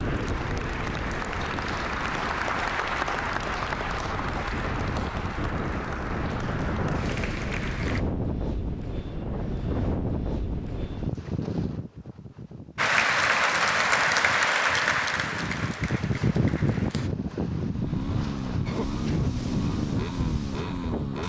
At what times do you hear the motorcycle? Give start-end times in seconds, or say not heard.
17.6-21.2.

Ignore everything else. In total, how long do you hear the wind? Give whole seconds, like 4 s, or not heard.
21 s.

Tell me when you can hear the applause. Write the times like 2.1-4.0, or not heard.
0.0-8.1, 12.8-17.1.